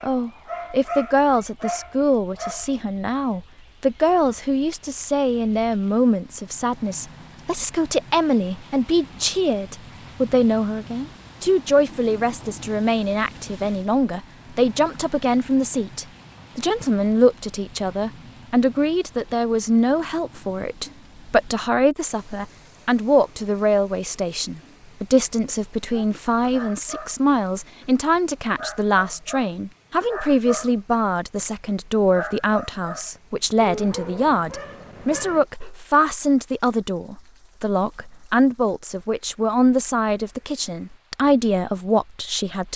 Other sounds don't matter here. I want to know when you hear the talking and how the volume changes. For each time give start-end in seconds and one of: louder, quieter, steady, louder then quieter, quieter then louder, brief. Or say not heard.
0.0-42.7 steady.